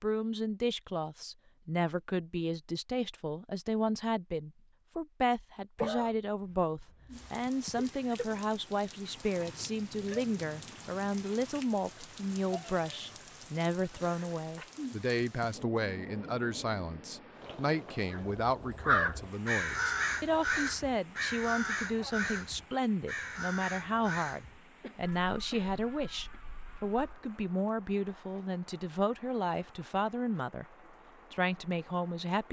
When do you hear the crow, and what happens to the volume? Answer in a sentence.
The crow can be heard from 18.1 to 27.2 s, getting quieter.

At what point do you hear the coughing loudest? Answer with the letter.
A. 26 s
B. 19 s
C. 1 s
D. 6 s
D.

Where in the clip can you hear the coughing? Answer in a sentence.
The coughing can be heard from 5.8 to 7.3 s and from 24.8 to 26.4 s.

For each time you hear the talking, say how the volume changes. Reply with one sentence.
You can hear the talking from 0.0 to 30.6 s, at a steady volume; and briefly from 31.3 to 32.4 s.